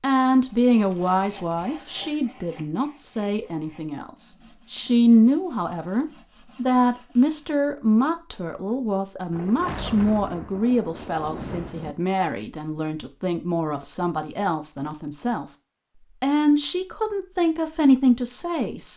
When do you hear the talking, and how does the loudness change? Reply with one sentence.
You can hear the talking from 0.0 to 4.1 s, getting quieter; from 4.7 to 15.4 s, getting quieter; and briefly from 16.2 to 18.9 s.